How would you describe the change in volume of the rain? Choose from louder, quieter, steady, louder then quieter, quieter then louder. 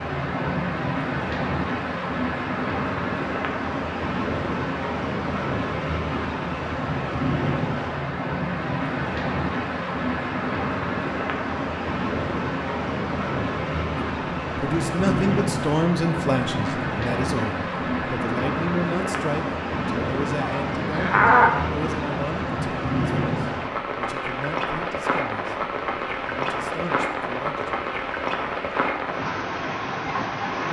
steady.